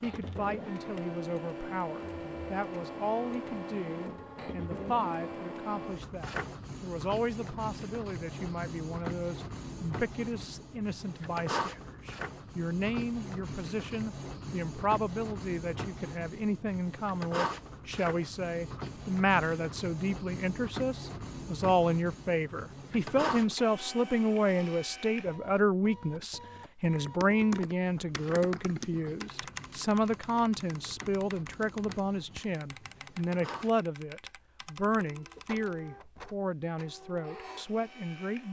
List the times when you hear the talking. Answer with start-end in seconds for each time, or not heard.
0.0-38.4.